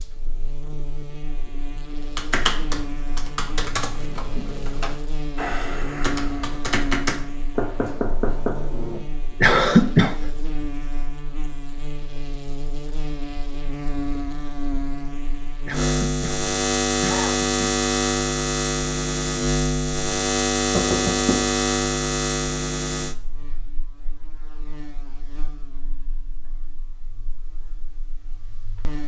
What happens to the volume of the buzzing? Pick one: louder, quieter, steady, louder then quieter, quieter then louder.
louder then quieter.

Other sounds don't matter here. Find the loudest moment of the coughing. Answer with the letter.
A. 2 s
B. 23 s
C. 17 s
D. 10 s
D.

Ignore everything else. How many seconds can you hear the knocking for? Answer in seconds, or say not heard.
2 s.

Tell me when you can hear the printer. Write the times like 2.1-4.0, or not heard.
not heard.